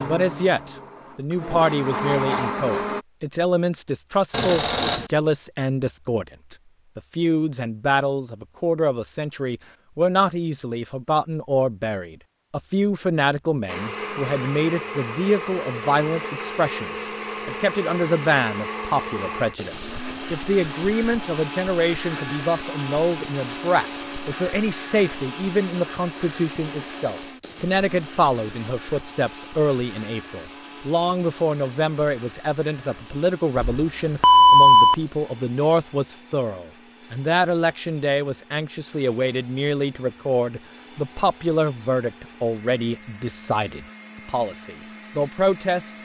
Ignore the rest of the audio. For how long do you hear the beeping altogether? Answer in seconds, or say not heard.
2 s.